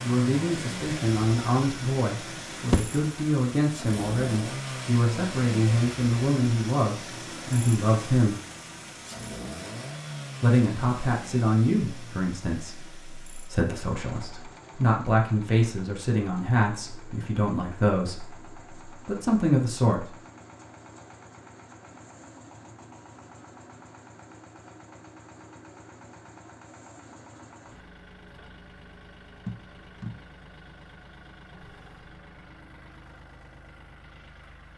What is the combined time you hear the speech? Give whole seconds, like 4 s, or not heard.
18 s.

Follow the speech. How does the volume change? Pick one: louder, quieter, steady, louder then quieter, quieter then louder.
steady.